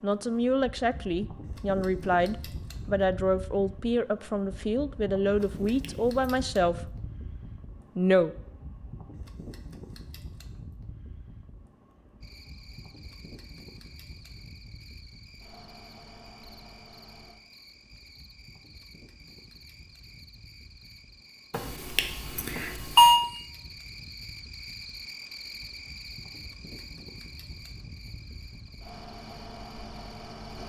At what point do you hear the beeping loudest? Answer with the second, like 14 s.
23 s.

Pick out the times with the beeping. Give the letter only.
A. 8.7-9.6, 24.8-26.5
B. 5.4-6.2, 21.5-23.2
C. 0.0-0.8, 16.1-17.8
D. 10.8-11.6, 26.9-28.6
B.